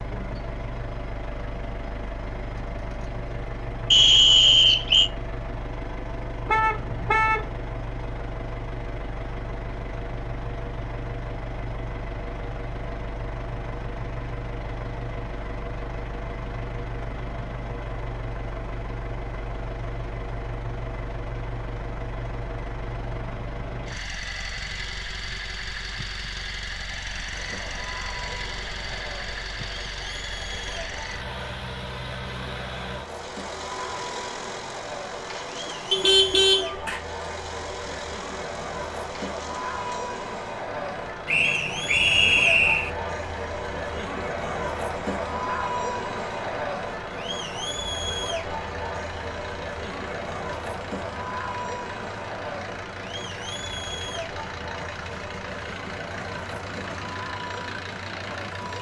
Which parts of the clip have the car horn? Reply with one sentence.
The car horn can be heard from 6.5 to 7.5 s and from 35.9 to 37.0 s.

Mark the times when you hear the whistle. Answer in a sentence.
The whistle can be heard from 3.9 to 5.1 s and from 41.2 to 42.9 s.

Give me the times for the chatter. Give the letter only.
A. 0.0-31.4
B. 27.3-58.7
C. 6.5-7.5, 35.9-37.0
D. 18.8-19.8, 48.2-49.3
B.